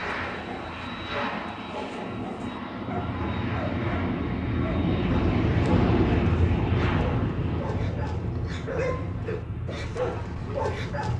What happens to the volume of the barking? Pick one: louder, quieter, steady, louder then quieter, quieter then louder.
louder.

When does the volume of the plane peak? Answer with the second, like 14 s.
6 s.